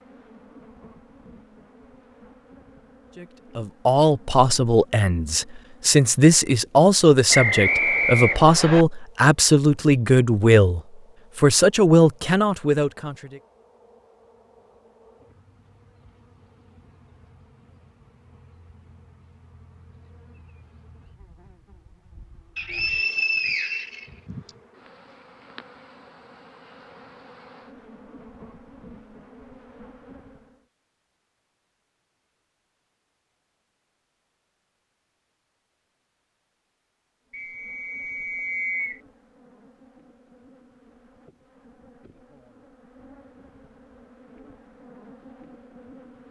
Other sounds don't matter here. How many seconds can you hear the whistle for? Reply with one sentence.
You can hear the whistle for 5 seconds altogether.